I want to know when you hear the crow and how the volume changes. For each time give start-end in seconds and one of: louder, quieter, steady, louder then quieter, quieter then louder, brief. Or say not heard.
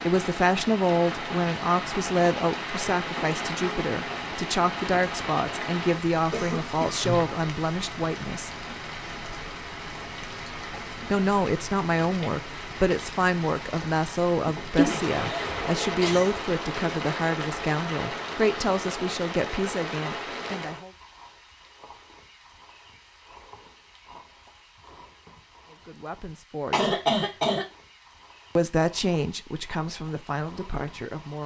not heard.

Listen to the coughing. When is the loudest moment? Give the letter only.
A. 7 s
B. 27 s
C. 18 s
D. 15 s
B.